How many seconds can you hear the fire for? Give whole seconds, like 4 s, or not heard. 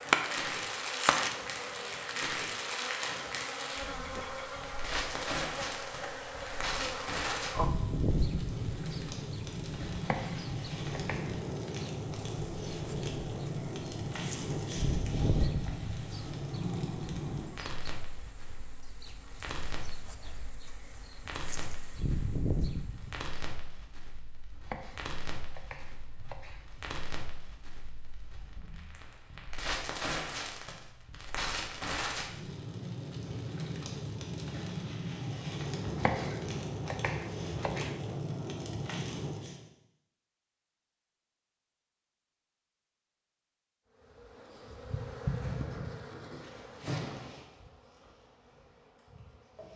40 s.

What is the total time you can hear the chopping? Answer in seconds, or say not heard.
6 s.